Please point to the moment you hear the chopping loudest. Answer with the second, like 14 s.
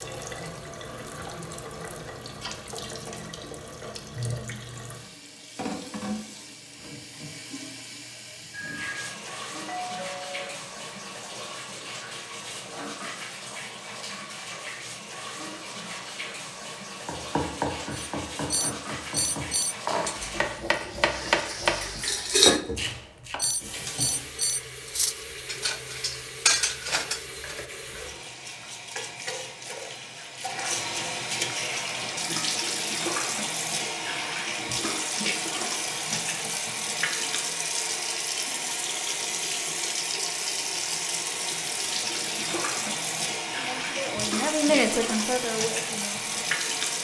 21 s.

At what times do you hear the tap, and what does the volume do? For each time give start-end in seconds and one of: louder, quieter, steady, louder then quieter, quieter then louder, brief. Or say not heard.
0.0-46.9 louder.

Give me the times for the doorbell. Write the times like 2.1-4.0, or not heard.
8.5-10.6.